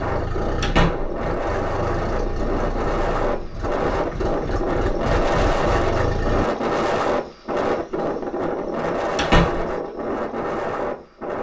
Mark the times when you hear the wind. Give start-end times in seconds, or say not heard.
0.0-11.3.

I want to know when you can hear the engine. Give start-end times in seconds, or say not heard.
0.0-6.5.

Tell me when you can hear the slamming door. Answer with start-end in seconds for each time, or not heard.
0.6-1.1, 9.2-9.7.